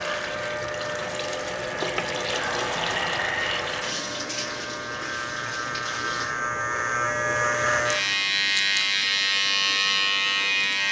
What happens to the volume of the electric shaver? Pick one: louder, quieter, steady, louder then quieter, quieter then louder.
louder.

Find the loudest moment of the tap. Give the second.
3 s.